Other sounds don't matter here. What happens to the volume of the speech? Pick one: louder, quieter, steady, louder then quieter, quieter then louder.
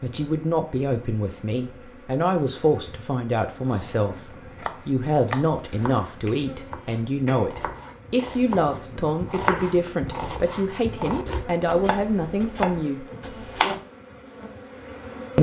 steady.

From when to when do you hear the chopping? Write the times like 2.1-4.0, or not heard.
3.7-13.8.